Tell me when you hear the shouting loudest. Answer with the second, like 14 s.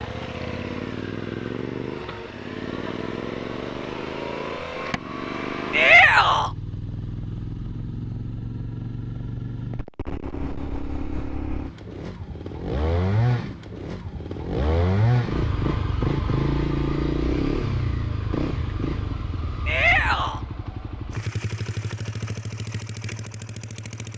6 s.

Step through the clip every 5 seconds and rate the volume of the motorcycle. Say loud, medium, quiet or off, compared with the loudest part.
medium, medium, loud, loud, medium.